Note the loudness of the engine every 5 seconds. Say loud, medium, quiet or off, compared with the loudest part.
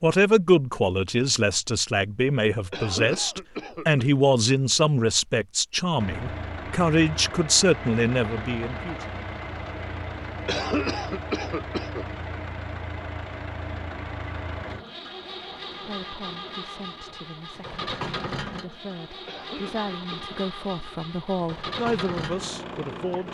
off, loud, loud, loud, loud.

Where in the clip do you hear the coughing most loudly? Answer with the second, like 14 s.
11 s.